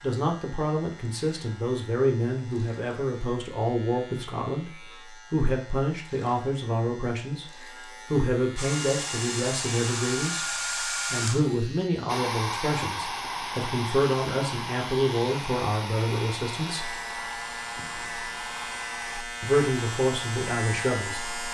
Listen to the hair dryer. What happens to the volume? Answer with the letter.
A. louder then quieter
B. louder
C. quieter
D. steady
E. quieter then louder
C.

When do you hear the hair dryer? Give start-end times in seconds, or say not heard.
8.6-21.4.